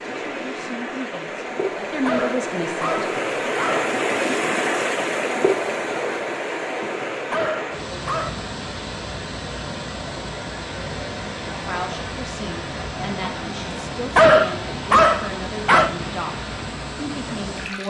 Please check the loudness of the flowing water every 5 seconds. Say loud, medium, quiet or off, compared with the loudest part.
loud, loud, medium, medium.